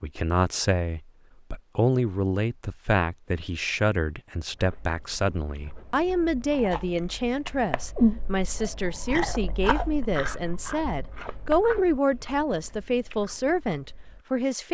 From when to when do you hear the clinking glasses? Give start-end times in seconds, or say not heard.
not heard.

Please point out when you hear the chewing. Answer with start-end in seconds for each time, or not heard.
4.5-14.2.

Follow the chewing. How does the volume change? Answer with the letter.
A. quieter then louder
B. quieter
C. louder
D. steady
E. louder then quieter
E.